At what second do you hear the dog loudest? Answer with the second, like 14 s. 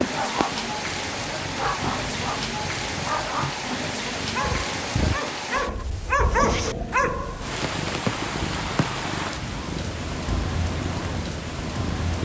6 s.